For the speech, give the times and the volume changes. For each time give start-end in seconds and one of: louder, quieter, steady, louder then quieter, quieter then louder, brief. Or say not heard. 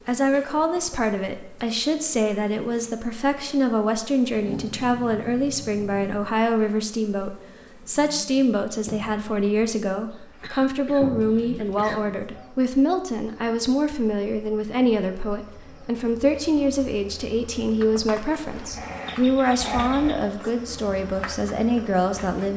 0.1-22.5 steady.